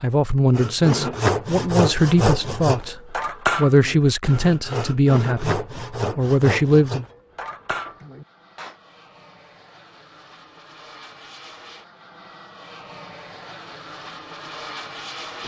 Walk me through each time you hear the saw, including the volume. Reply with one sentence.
You can hear the saw from 0.5 to 8.8 s, getting quieter.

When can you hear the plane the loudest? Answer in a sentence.
The volume of the plane peaks at 15 seconds.